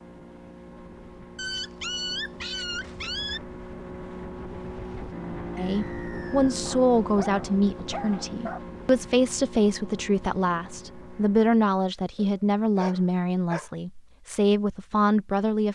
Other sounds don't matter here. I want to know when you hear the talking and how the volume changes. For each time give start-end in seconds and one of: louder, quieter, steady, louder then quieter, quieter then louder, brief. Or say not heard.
5.5-15.7 steady.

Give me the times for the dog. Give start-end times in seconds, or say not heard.
1.4-3.4, 6.7-8.6, 12.2-13.7.